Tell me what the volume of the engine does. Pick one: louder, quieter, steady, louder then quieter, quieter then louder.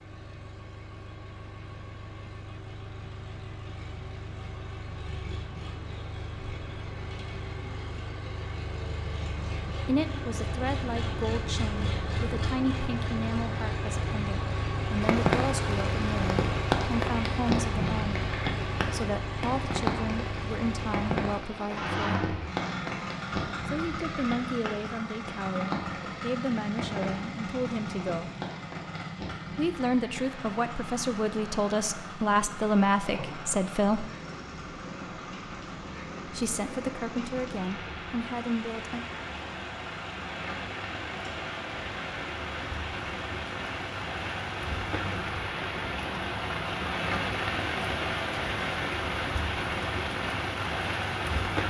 louder then quieter.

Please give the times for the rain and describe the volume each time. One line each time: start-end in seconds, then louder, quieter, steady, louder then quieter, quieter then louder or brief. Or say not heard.
15.0-51.6 quieter then louder.